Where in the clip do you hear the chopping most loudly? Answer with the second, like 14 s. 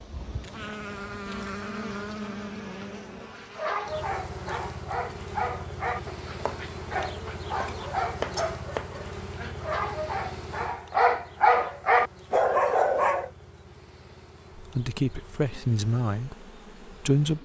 8 s.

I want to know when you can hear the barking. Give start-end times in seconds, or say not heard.
3.4-13.3.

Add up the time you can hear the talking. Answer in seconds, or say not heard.
3 s.